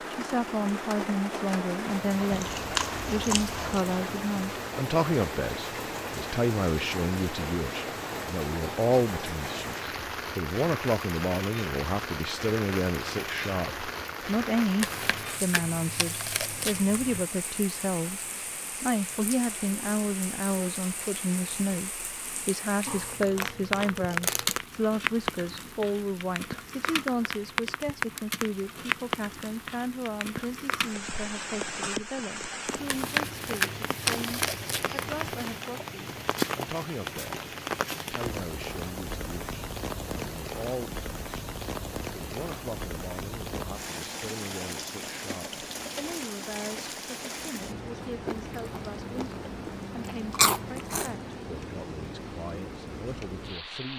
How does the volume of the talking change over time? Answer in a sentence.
The loudness of the talking goes down.